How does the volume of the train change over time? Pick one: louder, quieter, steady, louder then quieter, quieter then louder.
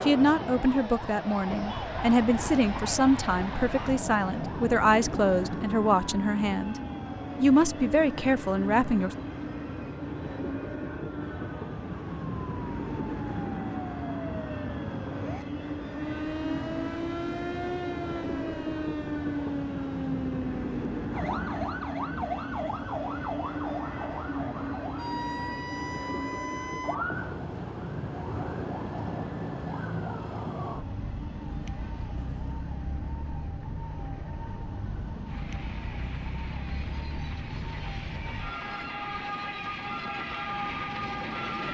quieter.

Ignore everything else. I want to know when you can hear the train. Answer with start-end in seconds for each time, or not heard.
1.4-41.6.